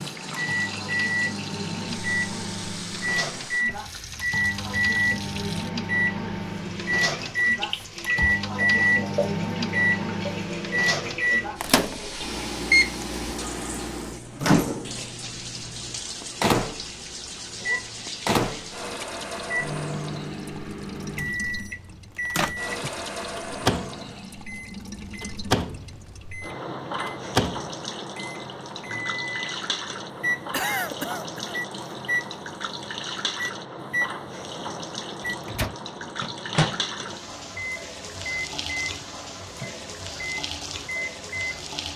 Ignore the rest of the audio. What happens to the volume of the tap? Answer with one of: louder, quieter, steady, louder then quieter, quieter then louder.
steady.